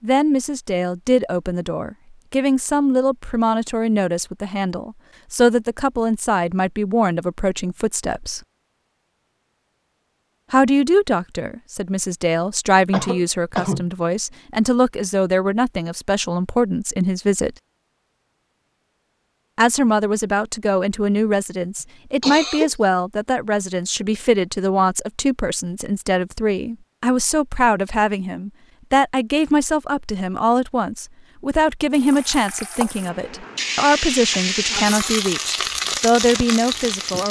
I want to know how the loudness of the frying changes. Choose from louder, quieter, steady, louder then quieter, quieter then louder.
louder.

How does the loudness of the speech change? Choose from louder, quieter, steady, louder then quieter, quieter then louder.
steady.